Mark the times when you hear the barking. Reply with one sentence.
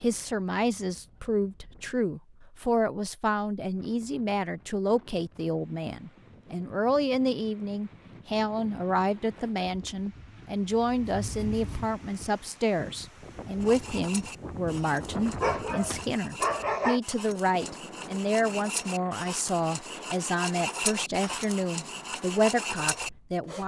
The barking can be heard from 15.4 to 17.0 s.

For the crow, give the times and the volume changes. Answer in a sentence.
You can't hear the crow here.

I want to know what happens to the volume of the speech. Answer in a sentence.
The loudness of the speech stays about the same.